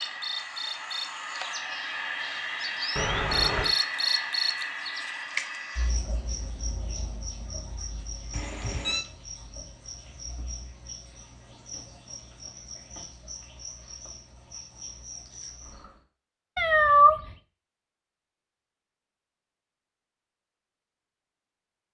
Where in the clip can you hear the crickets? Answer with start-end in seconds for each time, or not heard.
0.0-16.0.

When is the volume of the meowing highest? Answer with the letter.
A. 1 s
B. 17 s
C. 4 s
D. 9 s
B.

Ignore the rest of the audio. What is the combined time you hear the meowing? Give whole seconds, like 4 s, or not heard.
2 s.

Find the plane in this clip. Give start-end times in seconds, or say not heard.
not heard.